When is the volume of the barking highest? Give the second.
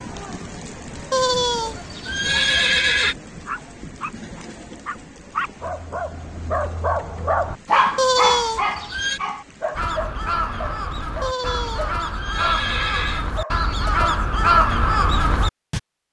8 s.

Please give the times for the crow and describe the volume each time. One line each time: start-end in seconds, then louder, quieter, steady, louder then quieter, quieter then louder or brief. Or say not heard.
9.8-15.8 louder.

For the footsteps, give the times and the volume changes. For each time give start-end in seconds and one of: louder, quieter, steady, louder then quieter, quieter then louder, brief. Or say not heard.
not heard.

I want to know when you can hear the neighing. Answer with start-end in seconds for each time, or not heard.
1.1-3.1, 8.0-9.2, 11.2-13.3.